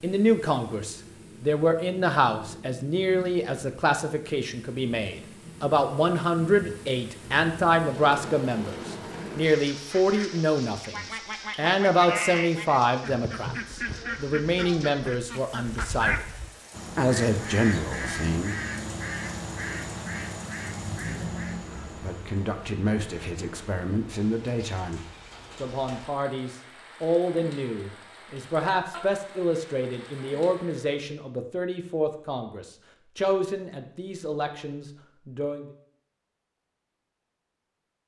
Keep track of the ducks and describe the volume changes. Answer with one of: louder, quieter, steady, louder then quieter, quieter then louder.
steady.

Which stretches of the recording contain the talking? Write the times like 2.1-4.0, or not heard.
0.0-16.2, 16.9-18.6, 22.0-25.0, 25.6-35.6.